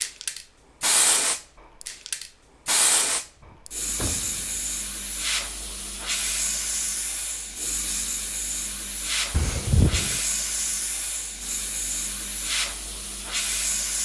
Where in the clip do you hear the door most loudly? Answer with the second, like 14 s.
10 s.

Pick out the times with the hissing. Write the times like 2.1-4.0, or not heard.
0.0-14.0.